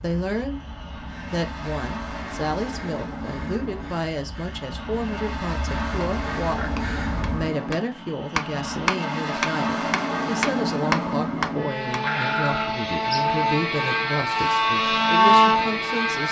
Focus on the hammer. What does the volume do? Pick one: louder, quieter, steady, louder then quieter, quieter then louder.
louder.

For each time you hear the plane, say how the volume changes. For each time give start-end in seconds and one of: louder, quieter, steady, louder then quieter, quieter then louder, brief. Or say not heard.
0.0-16.2 louder.